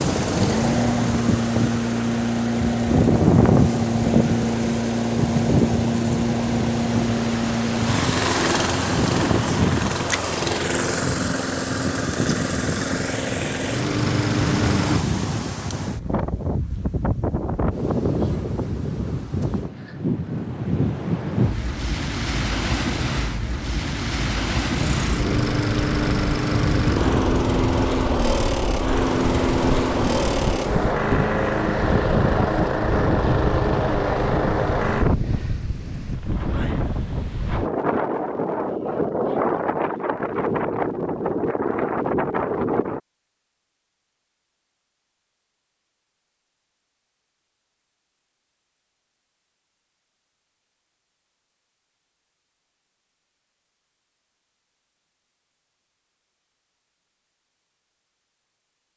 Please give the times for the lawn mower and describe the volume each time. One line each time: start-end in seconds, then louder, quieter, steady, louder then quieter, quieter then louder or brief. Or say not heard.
0.0-15.1 steady
24.7-35.1 steady.